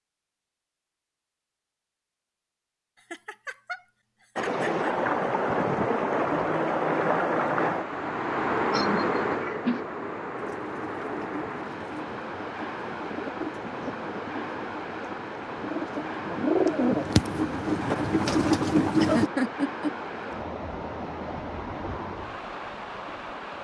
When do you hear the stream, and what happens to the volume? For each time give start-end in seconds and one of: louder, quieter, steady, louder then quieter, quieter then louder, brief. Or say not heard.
4.3-23.5 quieter.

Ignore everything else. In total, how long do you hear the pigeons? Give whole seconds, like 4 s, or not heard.
9 s.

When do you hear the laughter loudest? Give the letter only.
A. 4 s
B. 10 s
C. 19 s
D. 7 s
C.